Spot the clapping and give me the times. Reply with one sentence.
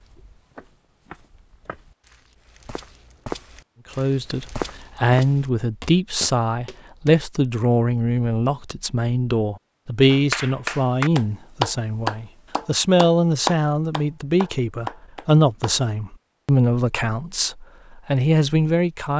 The clapping can be heard from 10.1 to 15.8 s.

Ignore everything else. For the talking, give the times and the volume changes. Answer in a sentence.
The talking can be heard from 4.0 to 19.1 s, at a steady volume.